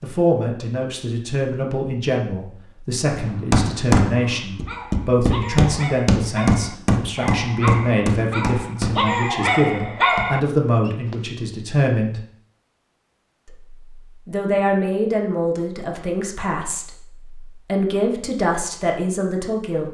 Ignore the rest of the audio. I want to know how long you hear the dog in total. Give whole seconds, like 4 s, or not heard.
7 s.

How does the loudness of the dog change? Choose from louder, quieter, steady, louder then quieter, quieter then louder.
louder.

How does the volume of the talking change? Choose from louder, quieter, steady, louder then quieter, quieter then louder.
steady.